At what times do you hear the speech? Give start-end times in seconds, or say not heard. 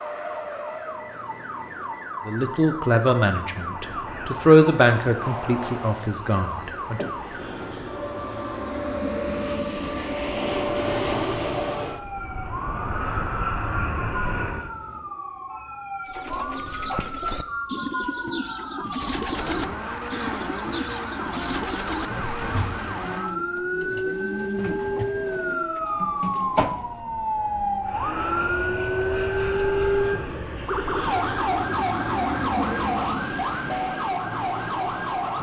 2.2-7.0.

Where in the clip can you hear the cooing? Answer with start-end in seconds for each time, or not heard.
16.1-26.9.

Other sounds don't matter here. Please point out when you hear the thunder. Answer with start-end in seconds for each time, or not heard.
13.7-15.0.